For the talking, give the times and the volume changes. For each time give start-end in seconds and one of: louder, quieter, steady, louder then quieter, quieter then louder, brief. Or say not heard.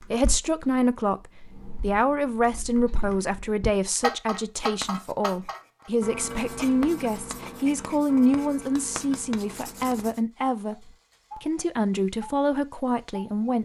0.1-13.6 steady.